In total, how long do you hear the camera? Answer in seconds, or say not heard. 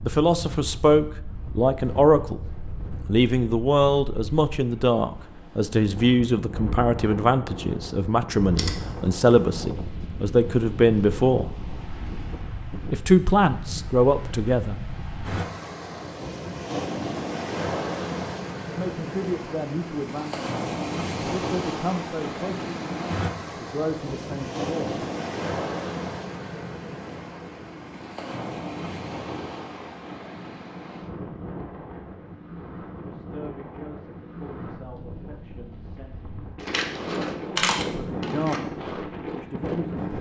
3 s.